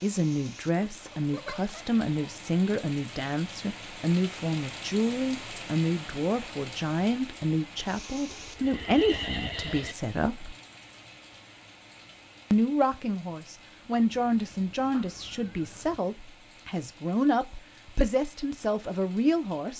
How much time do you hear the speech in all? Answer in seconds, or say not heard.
18 s.